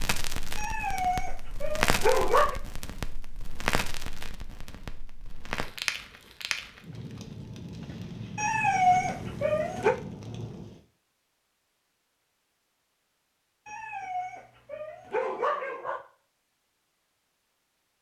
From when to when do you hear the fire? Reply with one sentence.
The fire can be heard from 0.0 to 10.8 s.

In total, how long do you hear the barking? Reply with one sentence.
The barking can be heard for 6 seconds in total.